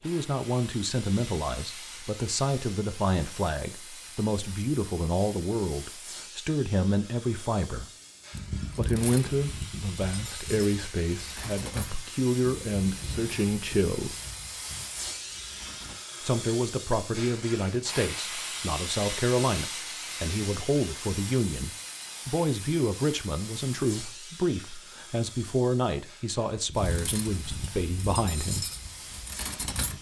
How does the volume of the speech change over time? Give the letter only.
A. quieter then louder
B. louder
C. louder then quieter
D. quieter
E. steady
E.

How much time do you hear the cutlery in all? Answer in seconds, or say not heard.
11 s.